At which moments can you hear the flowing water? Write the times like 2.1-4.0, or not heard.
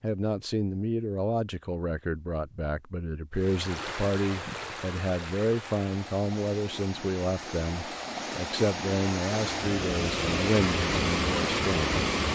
3.4-12.3.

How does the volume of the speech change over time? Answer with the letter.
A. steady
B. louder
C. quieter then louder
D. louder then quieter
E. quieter
A.